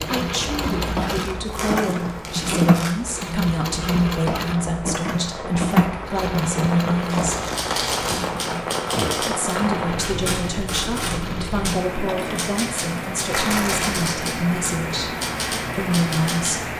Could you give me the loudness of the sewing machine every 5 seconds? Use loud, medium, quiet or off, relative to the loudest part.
loud, loud, medium, off.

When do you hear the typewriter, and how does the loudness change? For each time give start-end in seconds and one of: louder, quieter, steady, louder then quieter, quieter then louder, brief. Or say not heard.
7.4-16.6 steady.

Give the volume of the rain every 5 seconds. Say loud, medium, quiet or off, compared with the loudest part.
medium, loud, loud, loud.